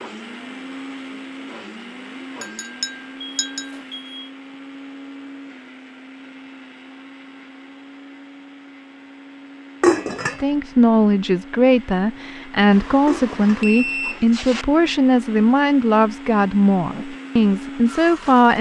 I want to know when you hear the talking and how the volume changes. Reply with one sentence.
The talking can be heard from 10.4 to 18.5 s, at a steady volume.